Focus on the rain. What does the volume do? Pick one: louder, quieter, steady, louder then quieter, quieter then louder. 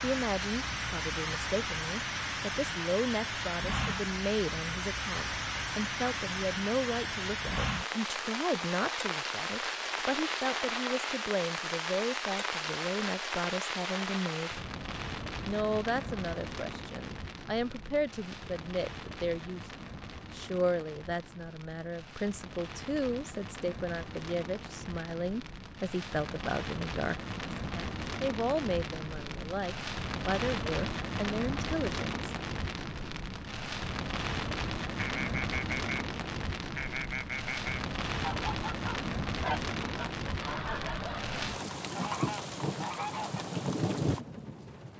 quieter then louder.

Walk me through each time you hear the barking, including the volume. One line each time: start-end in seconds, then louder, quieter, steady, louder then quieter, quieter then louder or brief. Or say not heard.
not heard.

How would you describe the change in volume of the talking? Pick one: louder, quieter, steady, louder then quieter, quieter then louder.
steady.